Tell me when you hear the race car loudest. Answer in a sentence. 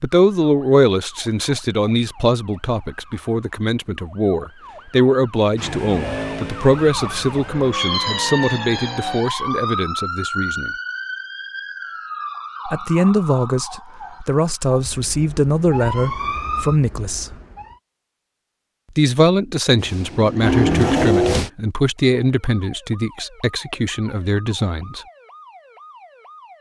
The volume of the race car peaks at 21 seconds.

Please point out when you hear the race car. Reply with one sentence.
The race car can be heard from 5.5 to 9.2 s and from 19.8 to 21.5 s.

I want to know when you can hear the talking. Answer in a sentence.
The talking can be heard from 0.0 to 10.7 s, from 12.7 to 17.3 s and from 18.9 to 25.1 s.